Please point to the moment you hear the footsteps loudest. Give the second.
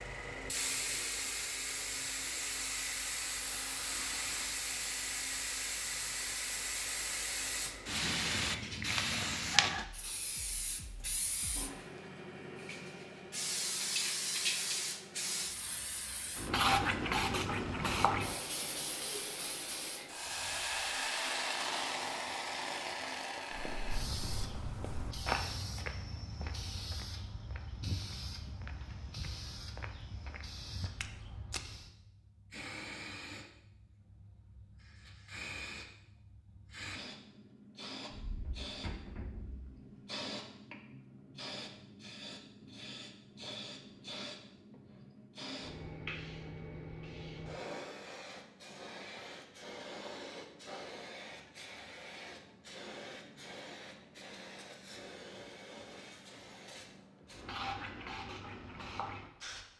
25 s.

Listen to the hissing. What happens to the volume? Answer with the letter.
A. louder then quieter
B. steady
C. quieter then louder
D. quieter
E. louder
D.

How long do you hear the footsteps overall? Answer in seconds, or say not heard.
8 s.